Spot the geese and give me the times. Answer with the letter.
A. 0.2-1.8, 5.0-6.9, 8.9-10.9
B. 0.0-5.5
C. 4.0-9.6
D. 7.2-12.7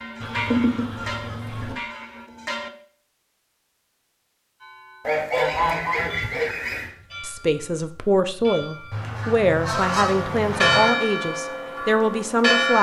A.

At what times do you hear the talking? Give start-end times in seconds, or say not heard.
7.2-12.7.